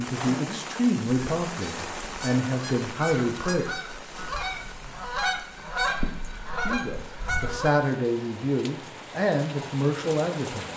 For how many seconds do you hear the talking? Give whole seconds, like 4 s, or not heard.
8 s.